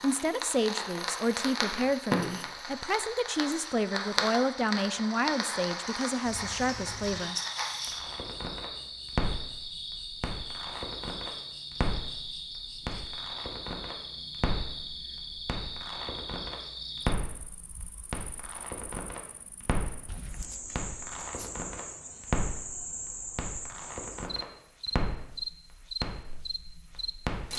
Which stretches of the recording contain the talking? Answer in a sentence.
The talking can be heard from 0.0 to 7.3 s.